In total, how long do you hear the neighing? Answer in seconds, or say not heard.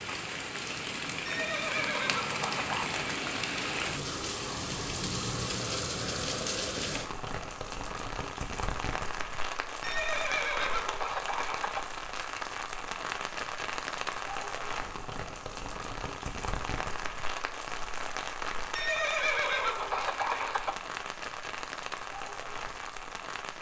6 s.